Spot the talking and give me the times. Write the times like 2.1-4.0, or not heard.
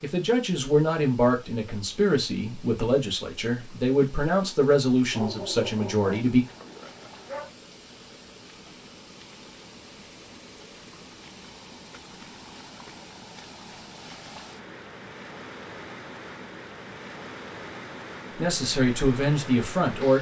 0.0-6.5, 18.4-20.1.